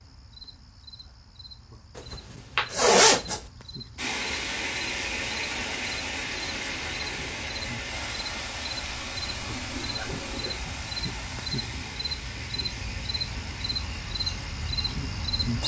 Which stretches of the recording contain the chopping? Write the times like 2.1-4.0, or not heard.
not heard.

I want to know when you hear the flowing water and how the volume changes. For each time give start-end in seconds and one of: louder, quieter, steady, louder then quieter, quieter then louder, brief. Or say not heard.
4.0-15.6 quieter.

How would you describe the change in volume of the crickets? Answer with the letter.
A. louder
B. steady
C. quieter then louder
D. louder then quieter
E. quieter
A.